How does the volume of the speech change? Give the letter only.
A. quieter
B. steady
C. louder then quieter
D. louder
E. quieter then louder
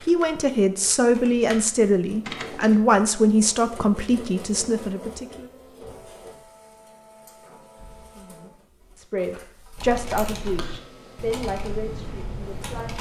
A.